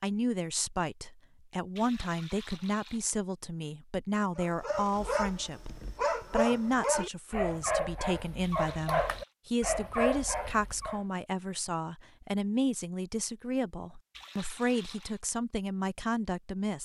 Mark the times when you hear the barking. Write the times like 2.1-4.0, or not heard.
4.3-11.0.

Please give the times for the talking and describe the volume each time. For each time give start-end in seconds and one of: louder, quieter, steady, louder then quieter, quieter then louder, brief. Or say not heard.
0.0-16.8 steady.